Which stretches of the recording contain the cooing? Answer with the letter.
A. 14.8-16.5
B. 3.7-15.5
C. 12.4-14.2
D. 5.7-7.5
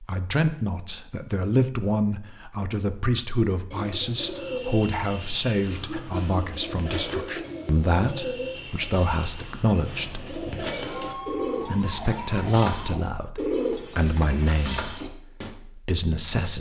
B.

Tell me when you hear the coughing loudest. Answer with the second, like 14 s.
7 s.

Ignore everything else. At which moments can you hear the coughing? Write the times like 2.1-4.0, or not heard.
5.7-7.5.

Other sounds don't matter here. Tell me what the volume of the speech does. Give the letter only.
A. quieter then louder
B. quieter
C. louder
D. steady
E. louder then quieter
D.